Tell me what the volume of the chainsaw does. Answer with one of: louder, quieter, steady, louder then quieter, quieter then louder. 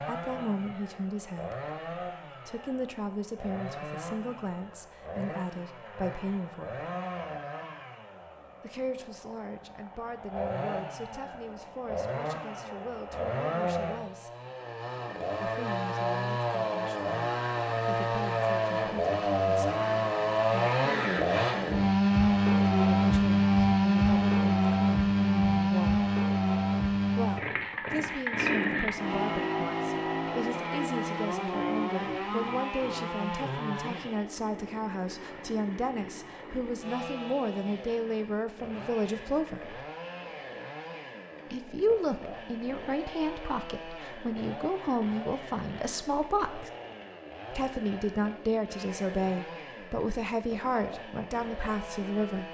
louder then quieter.